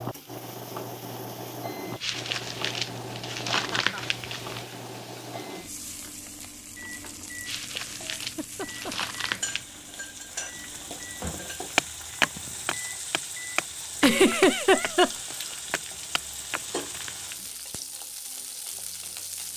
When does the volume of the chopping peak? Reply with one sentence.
The loudest moment of the chopping is at 12 seconds.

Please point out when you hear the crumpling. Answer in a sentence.
You can hear the crumpling from 2.0 to 4.7 s, from 7.5 to 9.7 s and from 15.3 to 17.6 s.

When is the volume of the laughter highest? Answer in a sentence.
The loudest moment of the laughter is at 14 seconds.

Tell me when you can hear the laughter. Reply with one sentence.
You can hear the laughter from 3.5 to 4.0 s, from 8.2 to 9.1 s and from 13.9 to 15.1 s.